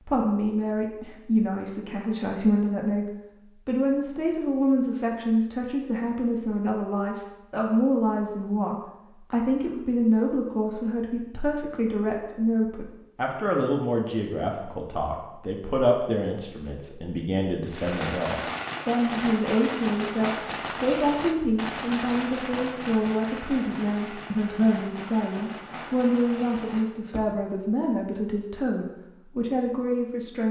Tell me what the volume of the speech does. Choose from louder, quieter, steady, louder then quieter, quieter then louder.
steady.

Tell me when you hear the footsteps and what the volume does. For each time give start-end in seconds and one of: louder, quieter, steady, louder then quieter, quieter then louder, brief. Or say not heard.
not heard.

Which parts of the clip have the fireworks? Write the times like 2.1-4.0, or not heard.
17.7-27.2.